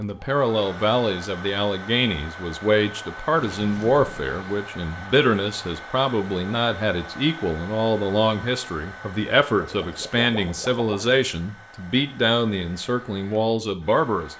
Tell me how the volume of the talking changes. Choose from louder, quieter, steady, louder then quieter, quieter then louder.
steady.